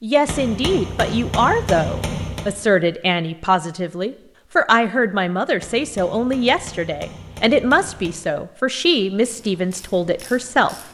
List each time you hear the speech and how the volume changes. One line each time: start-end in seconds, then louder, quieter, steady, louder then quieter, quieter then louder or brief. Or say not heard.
0.0-10.8 steady.